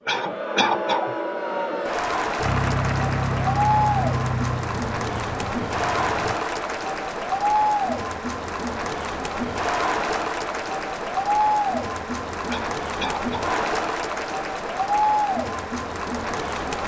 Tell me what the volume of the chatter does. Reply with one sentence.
The volume of the chatter stays about the same.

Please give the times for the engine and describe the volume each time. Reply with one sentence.
You can hear the engine from 2.4 to 6.4 s, getting quieter.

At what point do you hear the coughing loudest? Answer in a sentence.
The volume of the coughing peaks at 1 second.